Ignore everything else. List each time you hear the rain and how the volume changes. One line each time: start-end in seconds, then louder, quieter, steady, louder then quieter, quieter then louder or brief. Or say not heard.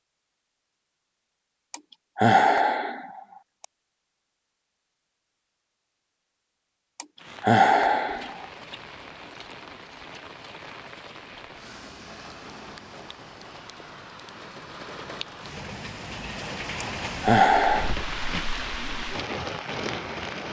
7.2-20.4 louder.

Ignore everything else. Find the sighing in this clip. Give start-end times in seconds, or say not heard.
1.7-3.6, 7.0-8.4, 16.8-17.9.